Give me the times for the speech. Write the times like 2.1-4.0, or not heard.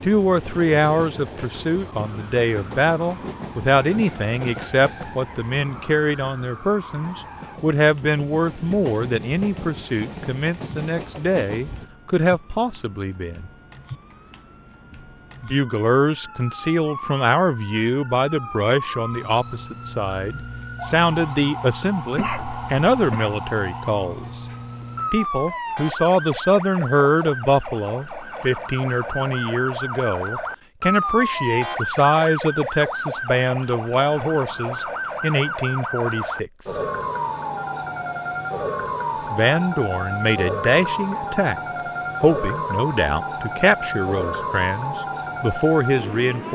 0.0-13.5, 15.4-24.4, 25.1-36.8, 39.3-41.6, 42.2-46.5.